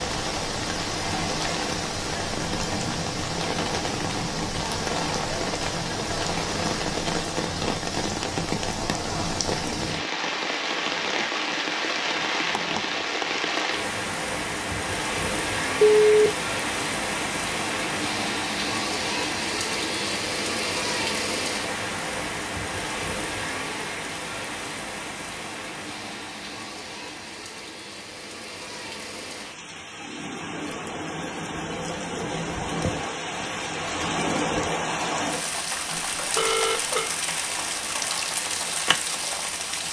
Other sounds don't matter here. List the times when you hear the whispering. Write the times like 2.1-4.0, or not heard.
not heard.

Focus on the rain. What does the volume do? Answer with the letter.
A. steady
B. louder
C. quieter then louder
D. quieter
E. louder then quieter
C.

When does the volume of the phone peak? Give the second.
16 s.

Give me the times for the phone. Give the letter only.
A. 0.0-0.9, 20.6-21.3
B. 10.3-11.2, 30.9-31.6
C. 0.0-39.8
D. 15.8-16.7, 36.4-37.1
D.